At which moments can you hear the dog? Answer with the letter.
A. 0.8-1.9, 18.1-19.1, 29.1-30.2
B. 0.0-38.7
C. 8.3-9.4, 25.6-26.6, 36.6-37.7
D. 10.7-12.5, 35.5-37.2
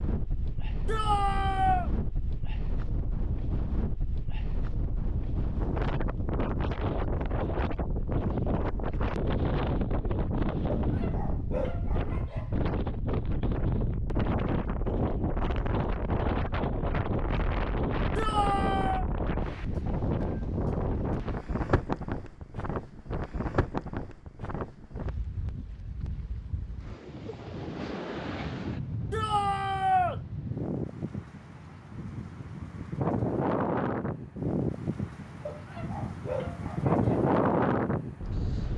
D.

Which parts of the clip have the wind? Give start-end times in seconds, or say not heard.
0.0-38.7.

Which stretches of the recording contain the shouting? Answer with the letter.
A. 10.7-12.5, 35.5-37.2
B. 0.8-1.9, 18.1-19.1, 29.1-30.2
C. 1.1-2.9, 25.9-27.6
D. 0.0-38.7
B.